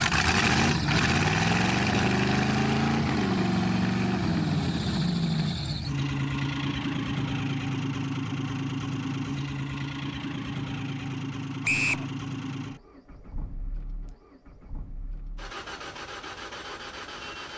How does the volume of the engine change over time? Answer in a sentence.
The loudness of the engine goes down.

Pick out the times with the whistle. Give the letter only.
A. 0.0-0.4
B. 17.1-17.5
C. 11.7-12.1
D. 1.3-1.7
C.